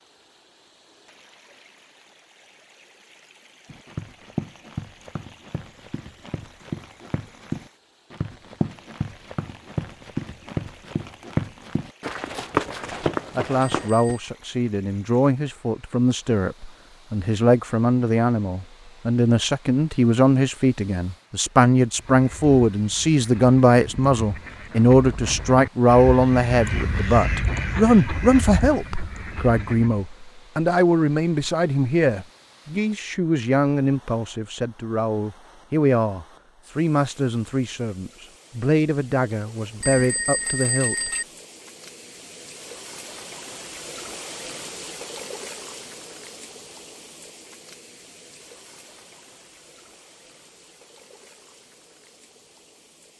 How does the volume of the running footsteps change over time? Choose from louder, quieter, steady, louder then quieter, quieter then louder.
louder.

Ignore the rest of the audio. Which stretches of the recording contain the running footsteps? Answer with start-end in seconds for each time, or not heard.
3.6-14.1.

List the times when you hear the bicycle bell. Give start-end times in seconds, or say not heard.
13.8-14.3, 39.8-41.2.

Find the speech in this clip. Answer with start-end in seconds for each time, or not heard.
12.8-41.1.